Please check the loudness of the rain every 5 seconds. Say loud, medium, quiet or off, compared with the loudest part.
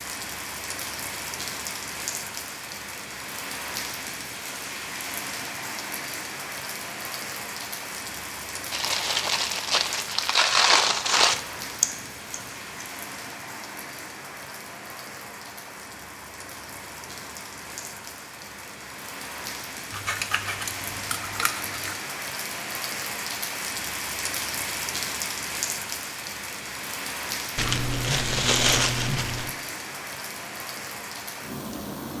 loud, loud, medium, medium, loud, loud, loud.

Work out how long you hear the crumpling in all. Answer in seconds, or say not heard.
5 s.